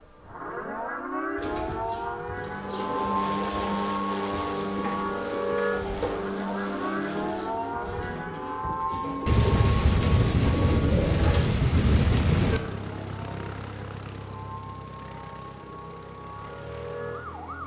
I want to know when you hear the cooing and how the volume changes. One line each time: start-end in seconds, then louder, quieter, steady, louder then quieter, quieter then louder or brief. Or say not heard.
1.4-11.4 louder.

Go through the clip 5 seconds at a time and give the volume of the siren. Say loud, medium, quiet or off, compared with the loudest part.
loud, loud, medium, medium.